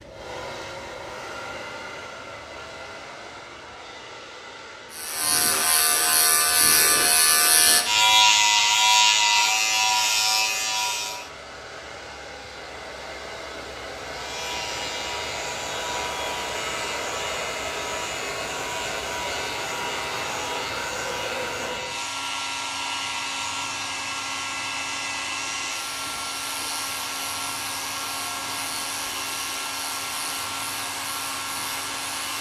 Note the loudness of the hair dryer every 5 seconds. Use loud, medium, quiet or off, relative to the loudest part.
medium, quiet, medium, loud, loud, loud, loud.